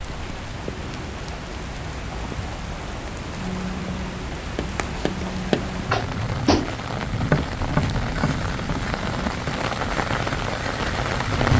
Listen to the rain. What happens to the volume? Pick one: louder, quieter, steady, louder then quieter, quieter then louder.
louder.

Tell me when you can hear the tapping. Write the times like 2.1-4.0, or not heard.
4.5-9.7.